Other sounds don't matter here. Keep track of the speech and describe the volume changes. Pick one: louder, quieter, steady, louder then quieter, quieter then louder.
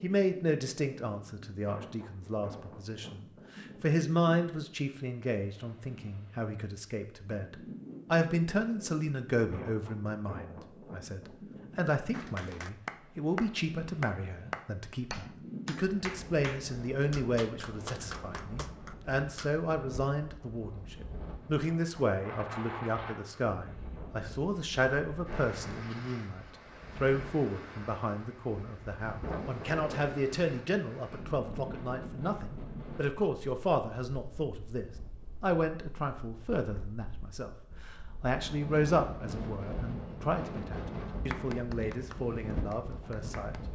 steady.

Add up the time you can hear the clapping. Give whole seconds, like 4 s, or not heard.
10 s.